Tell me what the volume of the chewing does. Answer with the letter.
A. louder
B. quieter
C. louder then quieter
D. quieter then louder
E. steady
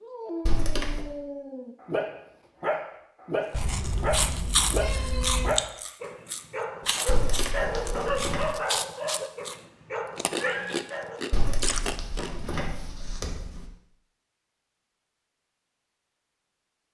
D.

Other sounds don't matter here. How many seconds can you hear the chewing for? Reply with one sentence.
The chewing can be heard for 9 seconds in total.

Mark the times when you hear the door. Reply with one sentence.
You can hear the door from 0.5 to 1.1 s, from 7.0 to 8.5 s and from 11.3 to 13.7 s.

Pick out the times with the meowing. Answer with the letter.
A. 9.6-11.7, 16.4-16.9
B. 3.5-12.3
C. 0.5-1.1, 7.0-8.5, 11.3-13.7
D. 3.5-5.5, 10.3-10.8
D.